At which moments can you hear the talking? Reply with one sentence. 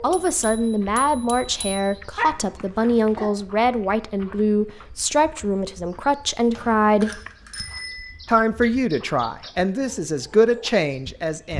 You can hear the talking from 0.0 to 7.2 s and from 8.2 to 11.5 s.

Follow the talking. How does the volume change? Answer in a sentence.
The loudness of the talking stays about the same.